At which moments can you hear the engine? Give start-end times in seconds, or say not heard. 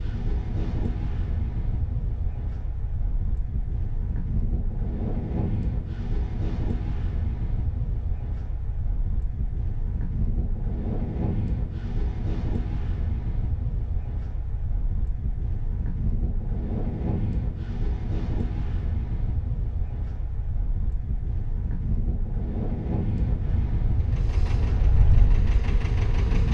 23.9-26.4.